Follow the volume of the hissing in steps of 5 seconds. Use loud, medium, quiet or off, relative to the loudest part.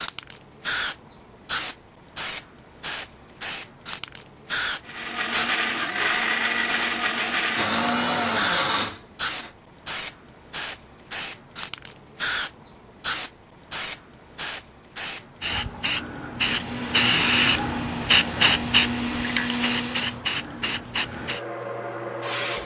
medium, medium, medium, loud, medium.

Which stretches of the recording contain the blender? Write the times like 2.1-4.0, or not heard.
4.8-9.5, 16.4-20.2.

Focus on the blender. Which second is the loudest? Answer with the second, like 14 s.
8 s.